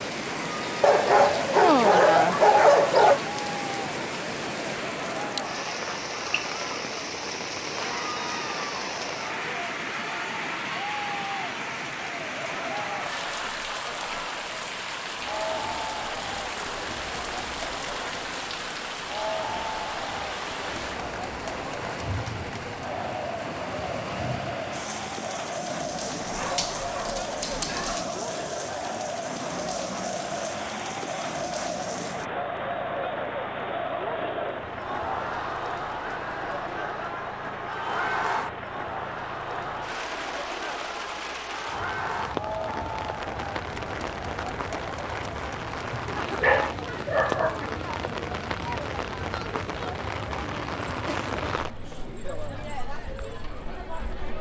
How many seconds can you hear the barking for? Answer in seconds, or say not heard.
6 s.